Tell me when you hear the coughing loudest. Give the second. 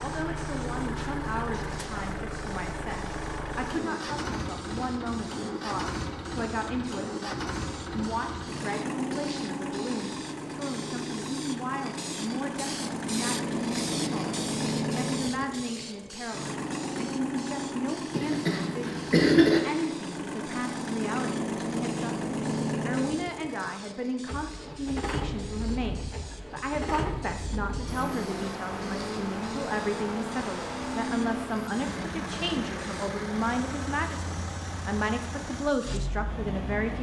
19 s.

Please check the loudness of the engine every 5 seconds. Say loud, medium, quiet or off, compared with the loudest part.
loud, loud, loud, loud, loud, loud, loud, medium.